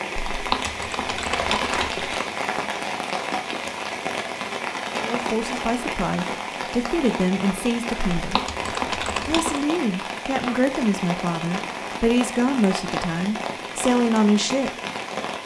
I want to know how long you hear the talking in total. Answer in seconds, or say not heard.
9 s.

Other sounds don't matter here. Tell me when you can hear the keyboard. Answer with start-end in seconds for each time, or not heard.
0.3-2.1, 8.2-9.6.